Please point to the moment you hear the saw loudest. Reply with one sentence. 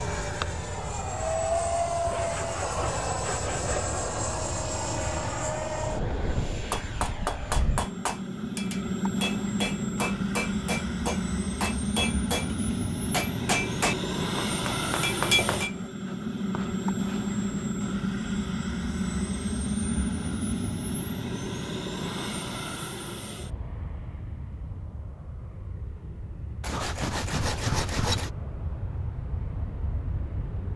The volume of the saw peaks at 28 seconds.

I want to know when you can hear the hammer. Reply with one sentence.
You can hear the hammer from 6.7 to 15.8 s.